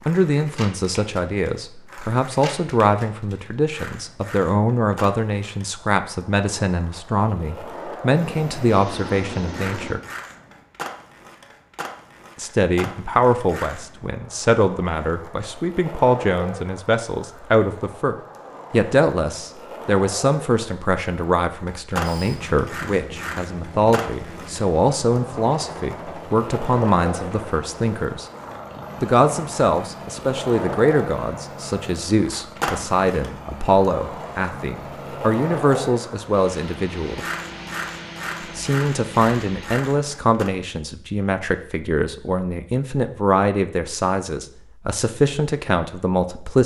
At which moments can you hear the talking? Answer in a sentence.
You can hear the talking from 0.1 to 10.0 s, from 12.3 to 28.2 s, from 29.0 to 37.2 s and from 38.5 to 46.6 s.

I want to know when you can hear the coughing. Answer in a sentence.
You can't hear the coughing here.